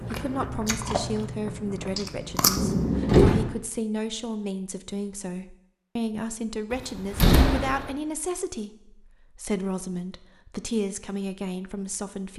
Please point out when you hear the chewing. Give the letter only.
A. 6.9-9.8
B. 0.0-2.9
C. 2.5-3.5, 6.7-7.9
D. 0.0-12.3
B.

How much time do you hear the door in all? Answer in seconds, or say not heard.
2 s.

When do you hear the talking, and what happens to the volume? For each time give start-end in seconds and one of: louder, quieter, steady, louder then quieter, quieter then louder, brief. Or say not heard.
0.0-12.3 steady.